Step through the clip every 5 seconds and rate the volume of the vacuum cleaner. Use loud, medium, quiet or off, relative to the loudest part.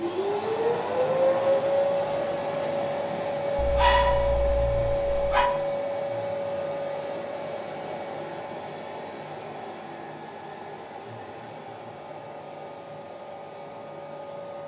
loud, medium, quiet.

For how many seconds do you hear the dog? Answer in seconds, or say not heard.
2 s.